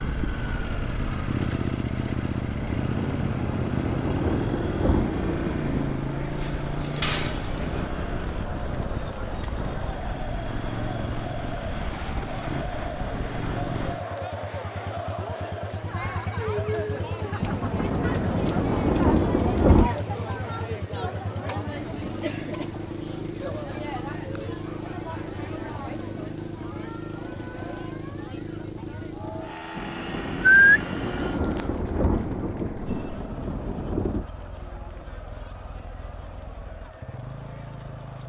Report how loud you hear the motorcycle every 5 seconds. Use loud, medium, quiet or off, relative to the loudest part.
loud, loud, medium, medium, medium, medium, medium, quiet.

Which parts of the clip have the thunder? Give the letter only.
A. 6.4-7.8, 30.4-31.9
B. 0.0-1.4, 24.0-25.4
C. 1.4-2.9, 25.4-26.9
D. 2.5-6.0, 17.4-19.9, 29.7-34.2
D.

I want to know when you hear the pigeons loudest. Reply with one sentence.
The volume of the pigeons peaks at 31 seconds.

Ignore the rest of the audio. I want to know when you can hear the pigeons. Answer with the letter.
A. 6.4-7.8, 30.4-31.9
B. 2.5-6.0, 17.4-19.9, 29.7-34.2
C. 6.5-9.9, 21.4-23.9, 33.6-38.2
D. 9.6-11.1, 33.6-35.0
A.